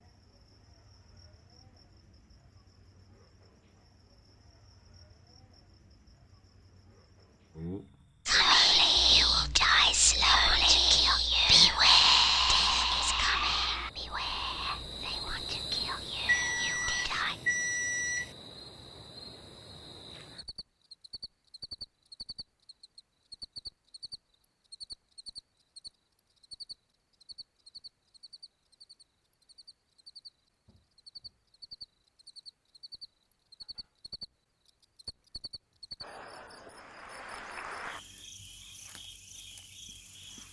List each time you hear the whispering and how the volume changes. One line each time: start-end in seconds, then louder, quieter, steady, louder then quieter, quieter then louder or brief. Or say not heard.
8.2-17.4 quieter.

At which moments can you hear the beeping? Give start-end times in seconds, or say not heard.
16.2-18.3.